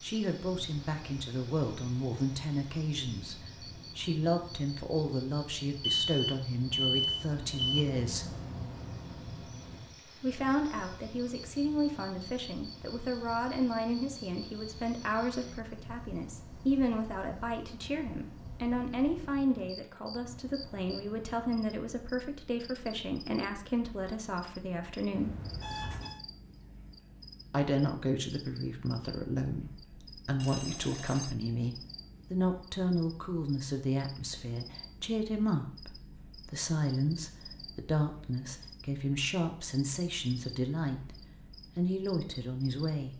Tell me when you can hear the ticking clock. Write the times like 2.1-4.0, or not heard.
not heard.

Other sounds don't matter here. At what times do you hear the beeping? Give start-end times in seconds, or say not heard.
5.8-7.8, 25.1-26.2, 30.4-31.4.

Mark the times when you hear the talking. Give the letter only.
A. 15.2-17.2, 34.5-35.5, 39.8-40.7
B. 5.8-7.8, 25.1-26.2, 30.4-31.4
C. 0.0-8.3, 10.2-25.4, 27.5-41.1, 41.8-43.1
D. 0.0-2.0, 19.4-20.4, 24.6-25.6
C.